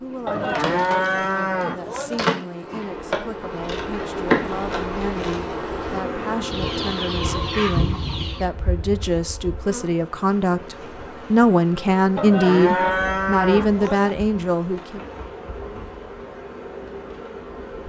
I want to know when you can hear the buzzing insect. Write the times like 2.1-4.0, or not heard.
0.0-17.8.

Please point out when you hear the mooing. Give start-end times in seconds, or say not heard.
0.2-2.2, 12.2-14.2.